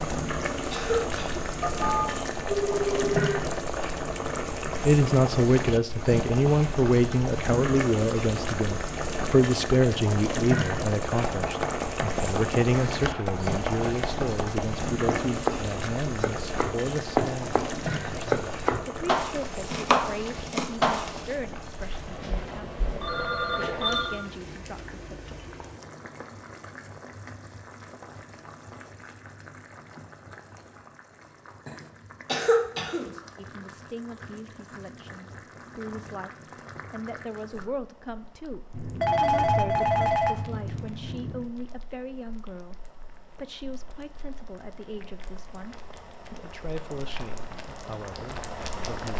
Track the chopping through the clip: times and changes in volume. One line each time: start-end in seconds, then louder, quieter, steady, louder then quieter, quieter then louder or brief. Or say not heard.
11.1-21.4 louder.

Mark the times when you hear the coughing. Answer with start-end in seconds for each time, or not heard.
0.7-1.4, 32.2-33.1.